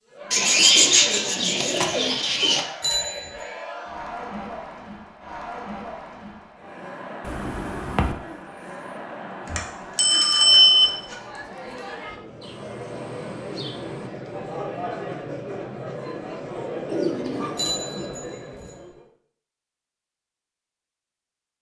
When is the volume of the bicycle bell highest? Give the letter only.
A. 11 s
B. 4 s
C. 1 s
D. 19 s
A.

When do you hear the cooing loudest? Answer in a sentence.
The loudest moment of the cooing is at 1 second.